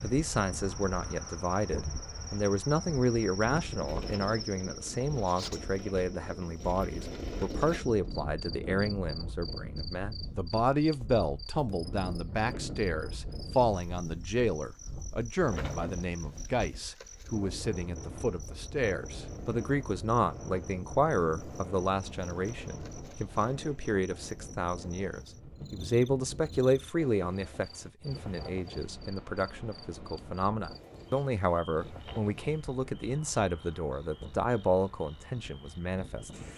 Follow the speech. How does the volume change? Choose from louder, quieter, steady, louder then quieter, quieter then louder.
steady.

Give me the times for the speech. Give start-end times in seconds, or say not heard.
0.0-36.5.